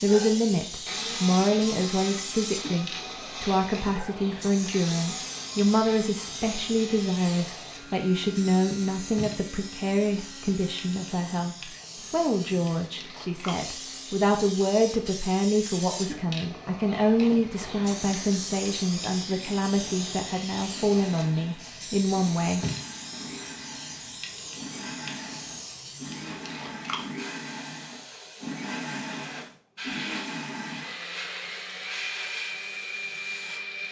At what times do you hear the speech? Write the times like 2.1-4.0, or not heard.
0.0-22.6.